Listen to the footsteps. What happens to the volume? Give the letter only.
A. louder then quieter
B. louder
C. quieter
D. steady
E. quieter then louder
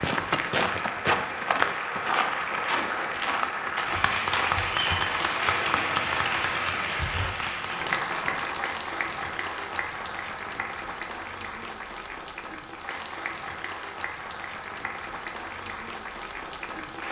C.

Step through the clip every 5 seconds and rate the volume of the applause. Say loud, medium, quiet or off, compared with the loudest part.
loud, loud, medium, medium.